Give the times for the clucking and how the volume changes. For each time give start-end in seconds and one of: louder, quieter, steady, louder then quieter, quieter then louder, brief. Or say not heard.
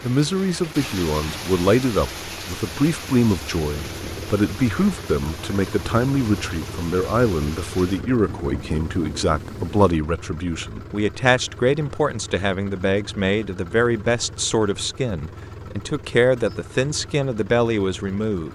not heard.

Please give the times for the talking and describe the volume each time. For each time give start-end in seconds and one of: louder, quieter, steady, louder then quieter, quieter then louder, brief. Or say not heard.
0.0-18.5 steady.